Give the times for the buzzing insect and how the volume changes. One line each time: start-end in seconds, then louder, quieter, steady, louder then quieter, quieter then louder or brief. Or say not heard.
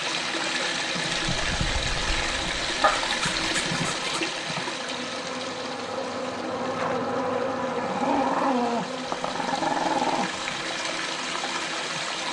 0.0-12.2 louder then quieter.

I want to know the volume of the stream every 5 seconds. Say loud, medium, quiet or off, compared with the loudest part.
loud, medium, loud.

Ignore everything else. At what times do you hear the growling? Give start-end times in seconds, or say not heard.
2.8-4.2, 7.8-10.4.